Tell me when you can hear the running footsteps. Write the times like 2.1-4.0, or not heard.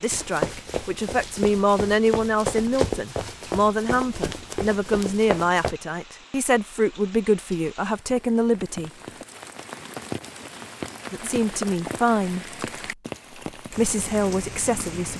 0.1-5.8.